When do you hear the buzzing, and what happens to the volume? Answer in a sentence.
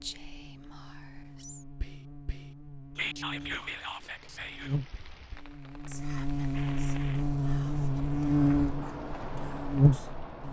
The buzzing can be heard from 0.0 to 10.4 s, getting louder.